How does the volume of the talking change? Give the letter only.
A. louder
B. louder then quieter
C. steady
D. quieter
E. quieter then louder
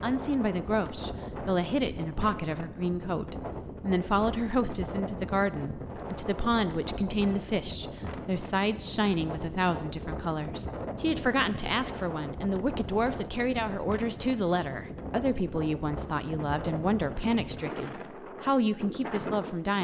C.